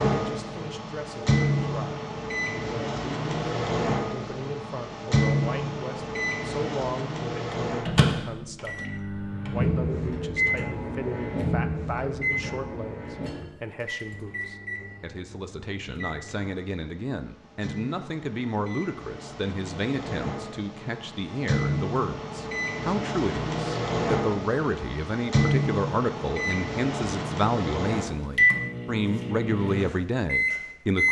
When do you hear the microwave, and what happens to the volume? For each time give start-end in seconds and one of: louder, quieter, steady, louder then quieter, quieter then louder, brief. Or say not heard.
0.0-31.0 quieter then louder.